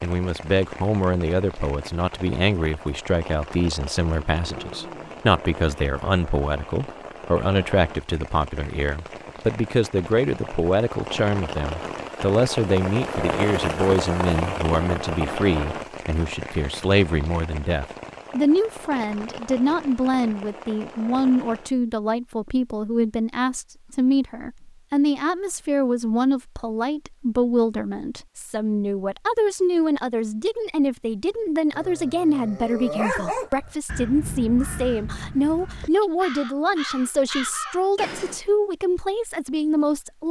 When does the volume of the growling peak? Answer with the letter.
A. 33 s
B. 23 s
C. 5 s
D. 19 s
A.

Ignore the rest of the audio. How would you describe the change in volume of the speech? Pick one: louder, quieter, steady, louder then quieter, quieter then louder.
steady.